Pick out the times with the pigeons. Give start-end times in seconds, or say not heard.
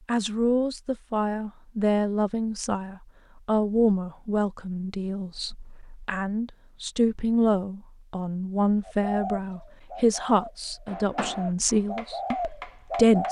8.8-13.2.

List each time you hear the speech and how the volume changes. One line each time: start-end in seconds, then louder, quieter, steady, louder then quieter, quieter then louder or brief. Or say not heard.
0.1-13.2 steady.